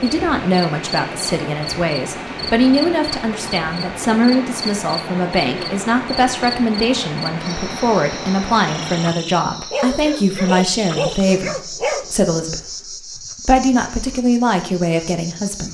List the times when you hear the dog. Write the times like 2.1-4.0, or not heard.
9.7-12.2.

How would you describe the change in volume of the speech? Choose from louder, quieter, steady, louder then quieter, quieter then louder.
steady.